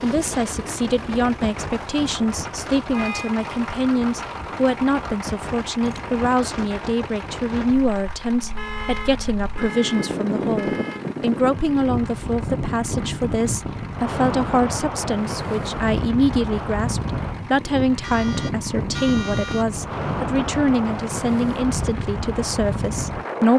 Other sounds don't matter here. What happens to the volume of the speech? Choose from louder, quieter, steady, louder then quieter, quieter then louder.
steady.